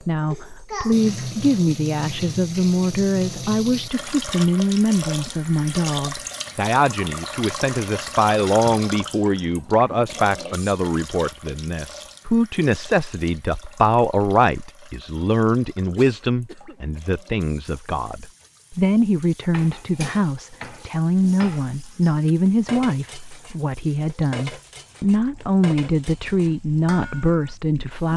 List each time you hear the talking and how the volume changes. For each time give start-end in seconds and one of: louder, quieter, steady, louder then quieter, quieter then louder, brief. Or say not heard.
0.1-28.1 steady.